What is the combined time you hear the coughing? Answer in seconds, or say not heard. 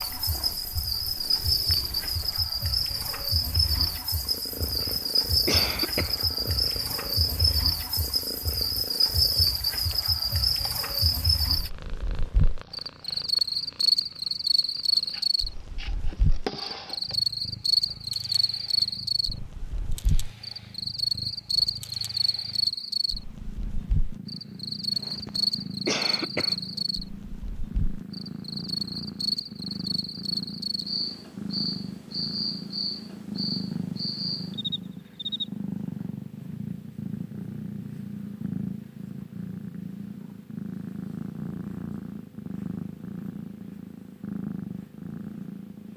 3 s.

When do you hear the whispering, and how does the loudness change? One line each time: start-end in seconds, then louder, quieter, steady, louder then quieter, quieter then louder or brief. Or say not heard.
not heard.